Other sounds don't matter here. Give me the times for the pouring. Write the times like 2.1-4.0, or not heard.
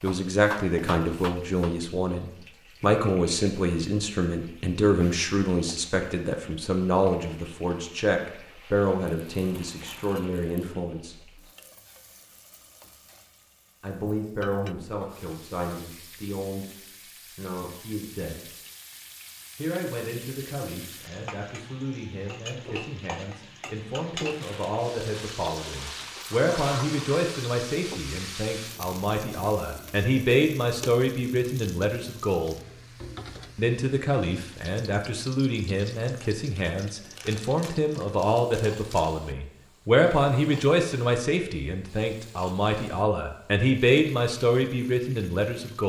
not heard.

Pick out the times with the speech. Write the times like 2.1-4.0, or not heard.
0.0-11.2, 13.8-18.4, 19.6-32.5, 33.5-45.8.